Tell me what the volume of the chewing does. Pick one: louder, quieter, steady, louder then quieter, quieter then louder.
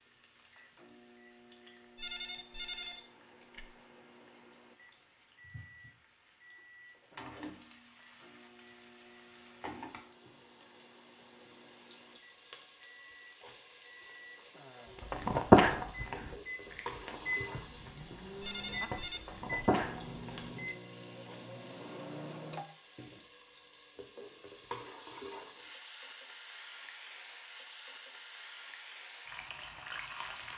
quieter then louder.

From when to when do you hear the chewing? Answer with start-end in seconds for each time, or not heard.
14.9-20.5.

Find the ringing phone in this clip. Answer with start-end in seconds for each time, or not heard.
1.9-3.8, 18.4-19.2.